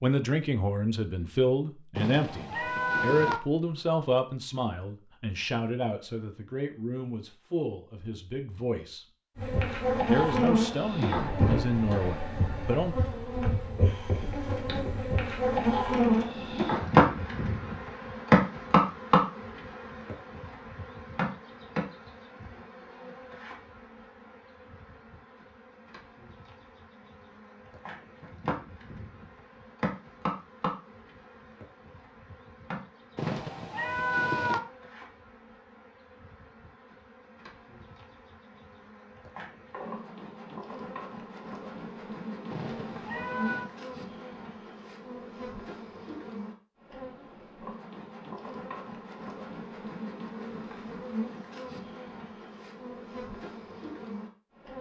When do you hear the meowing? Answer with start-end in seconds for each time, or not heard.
1.9-3.4, 33.1-34.6, 42.5-43.7.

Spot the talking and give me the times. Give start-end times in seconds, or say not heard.
0.0-9.1, 10.1-12.9.